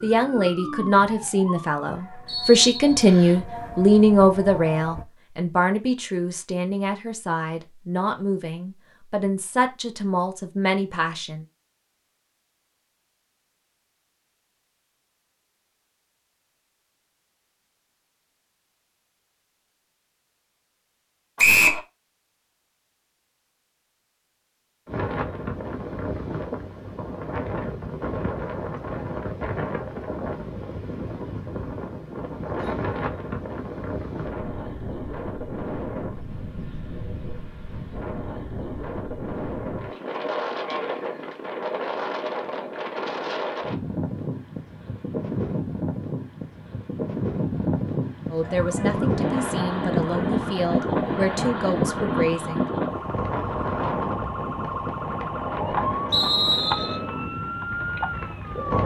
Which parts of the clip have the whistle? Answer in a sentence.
The whistle can be heard from 2.2 to 3.4 s, from 21.4 to 21.8 s and from 56.1 to 57.0 s.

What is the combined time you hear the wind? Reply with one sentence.
The wind can be heard for 34 seconds in total.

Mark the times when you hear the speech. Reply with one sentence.
You can hear the speech from 0.0 to 11.4 s and from 48.3 to 52.6 s.